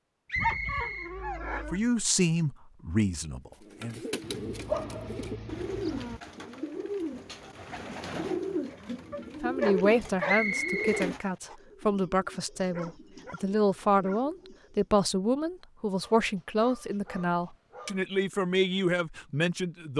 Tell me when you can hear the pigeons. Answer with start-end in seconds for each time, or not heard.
3.6-14.9.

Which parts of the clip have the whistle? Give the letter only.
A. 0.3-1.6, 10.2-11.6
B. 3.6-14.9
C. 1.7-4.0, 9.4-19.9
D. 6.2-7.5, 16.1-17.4
A.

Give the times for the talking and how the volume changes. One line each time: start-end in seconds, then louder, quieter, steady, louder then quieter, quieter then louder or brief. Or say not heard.
1.7-4.0 brief
9.4-19.9 steady.